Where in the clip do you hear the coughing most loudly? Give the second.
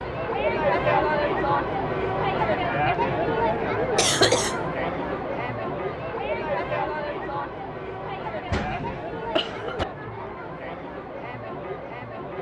4 s.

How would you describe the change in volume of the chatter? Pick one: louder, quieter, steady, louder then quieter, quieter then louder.
quieter.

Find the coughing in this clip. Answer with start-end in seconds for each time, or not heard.
4.0-4.6, 8.5-9.8.